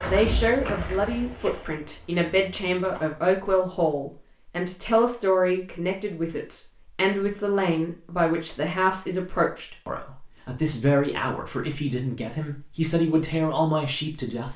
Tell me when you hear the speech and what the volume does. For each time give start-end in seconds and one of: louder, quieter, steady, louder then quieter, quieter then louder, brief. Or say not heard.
0.0-14.5 steady.